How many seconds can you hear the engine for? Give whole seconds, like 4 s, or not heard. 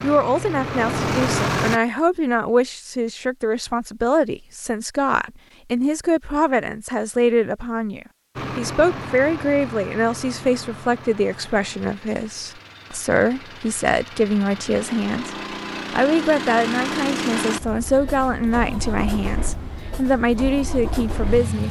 15 s.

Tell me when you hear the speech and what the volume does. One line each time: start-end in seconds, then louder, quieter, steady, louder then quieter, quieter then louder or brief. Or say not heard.
0.0-15.3 steady
15.9-21.6 steady.